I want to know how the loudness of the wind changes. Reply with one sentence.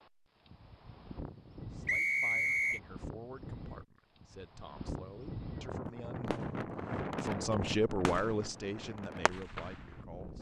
The volume of the wind goes up, then down.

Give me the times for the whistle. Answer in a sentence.
The whistle can be heard from 1.9 to 2.8 s.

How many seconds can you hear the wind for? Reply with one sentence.
You can hear the wind for 10 seconds altogether.